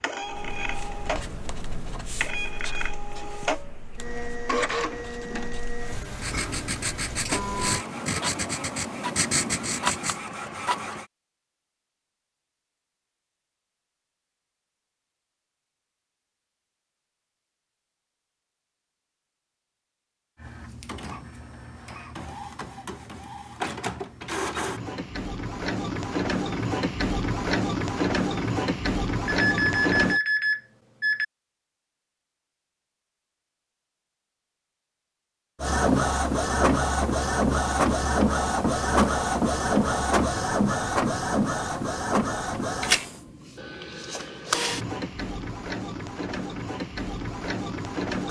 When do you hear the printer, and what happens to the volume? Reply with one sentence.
The printer can be heard from 0.0 to 11.1 s, at a steady volume; from 20.4 to 30.2 s, getting louder; and from 35.6 to 48.2 s, getting quieter.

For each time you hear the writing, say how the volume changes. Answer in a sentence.
The writing can be heard from 0.2 to 10.3 s, getting quieter then louder.